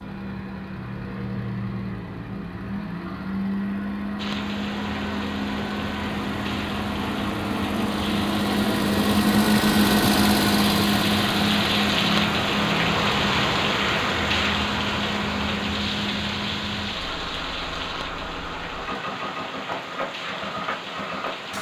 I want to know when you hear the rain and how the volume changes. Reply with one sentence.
The rain can be heard from 4.2 to 21.5 s, getting louder then quieter.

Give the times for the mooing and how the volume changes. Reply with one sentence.
The mooing can't be heard in this clip.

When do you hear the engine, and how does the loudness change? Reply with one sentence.
You can hear the engine from 0.0 to 21.5 s, getting louder then quieter.